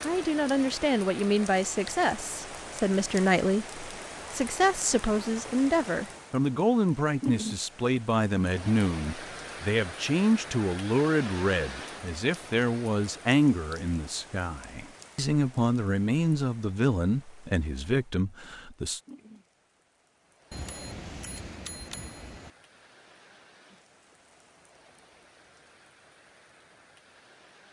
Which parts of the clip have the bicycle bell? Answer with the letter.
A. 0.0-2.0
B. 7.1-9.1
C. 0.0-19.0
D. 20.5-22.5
D.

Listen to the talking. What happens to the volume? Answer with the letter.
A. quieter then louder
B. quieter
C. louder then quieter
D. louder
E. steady
E.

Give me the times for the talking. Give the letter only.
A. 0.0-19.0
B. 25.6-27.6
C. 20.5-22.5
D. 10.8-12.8
A.